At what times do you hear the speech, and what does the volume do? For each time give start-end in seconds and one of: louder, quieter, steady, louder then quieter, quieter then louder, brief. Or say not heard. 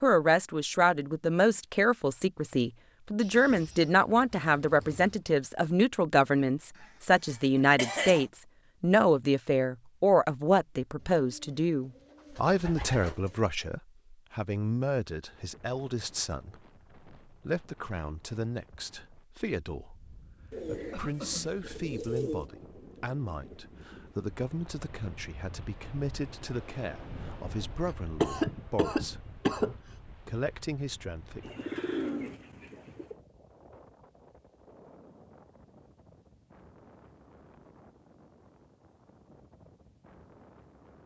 0.0-31.4 quieter.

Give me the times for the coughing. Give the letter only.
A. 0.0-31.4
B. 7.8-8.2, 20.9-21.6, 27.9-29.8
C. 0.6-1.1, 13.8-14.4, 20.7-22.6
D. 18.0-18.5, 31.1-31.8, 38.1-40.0
B.